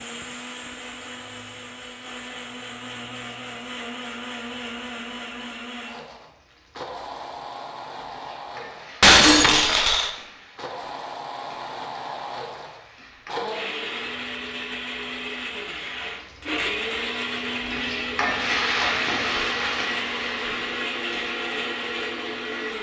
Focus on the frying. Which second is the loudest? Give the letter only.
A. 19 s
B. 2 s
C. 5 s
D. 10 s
A.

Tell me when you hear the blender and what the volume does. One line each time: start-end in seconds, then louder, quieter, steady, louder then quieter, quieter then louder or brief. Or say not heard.
0.0-22.7 louder.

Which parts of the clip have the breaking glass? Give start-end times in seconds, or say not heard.
9.0-10.1.